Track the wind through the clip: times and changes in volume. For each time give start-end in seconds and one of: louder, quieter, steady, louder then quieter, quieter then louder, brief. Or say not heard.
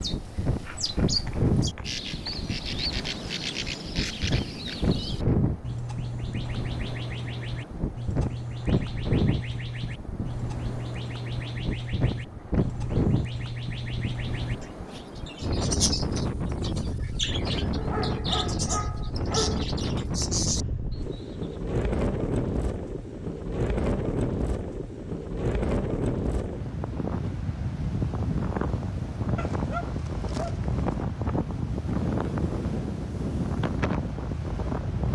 0.0-35.1 steady.